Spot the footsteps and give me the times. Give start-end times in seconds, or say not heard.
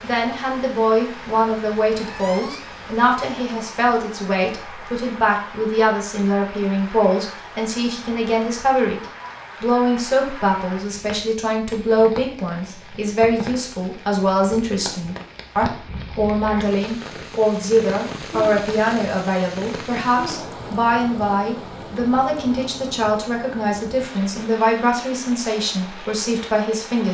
not heard.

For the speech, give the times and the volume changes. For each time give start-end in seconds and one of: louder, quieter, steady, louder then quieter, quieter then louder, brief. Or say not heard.
0.0-9.0 steady
9.6-27.0 steady.